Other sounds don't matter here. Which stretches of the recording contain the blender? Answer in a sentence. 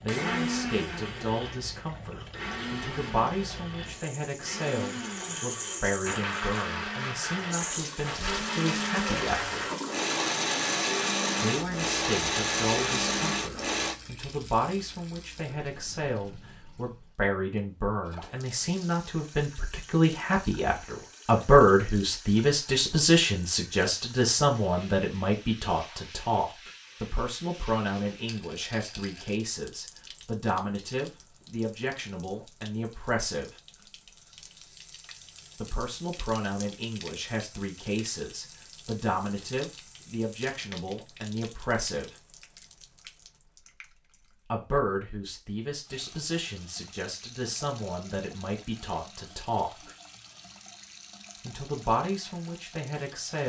You can hear the blender from 0.0 to 13.9 s.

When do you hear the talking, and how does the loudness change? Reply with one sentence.
You can hear the talking from 0.0 to 9.7 s, at a steady volume; from 11.4 to 33.5 s, getting louder then quieter; from 35.5 to 42.1 s, at a steady volume; from 44.5 to 50.0 s, at a steady volume; and briefly from 51.4 to 53.4 s.